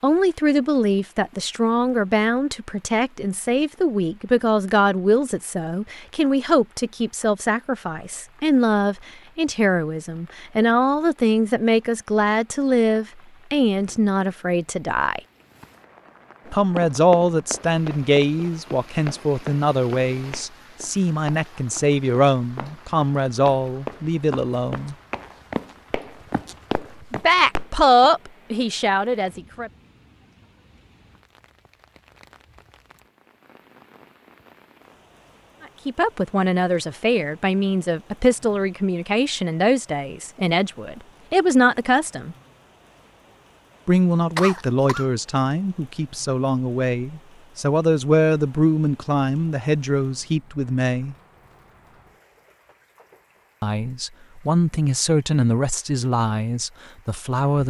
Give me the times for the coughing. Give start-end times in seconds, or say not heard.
44.4-45.0.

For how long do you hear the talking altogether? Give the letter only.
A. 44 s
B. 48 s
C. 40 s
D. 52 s
A.